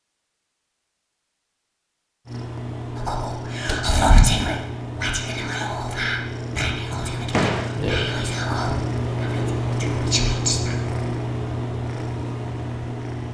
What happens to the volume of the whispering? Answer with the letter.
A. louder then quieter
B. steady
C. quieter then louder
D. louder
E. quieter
E.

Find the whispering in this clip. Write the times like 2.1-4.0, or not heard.
3.0-10.8.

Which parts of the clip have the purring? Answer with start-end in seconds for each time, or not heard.
2.2-13.2.